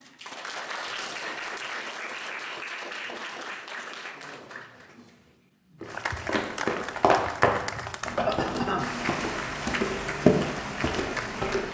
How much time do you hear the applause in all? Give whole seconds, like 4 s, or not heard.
12 s.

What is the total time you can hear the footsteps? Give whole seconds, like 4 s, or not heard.
6 s.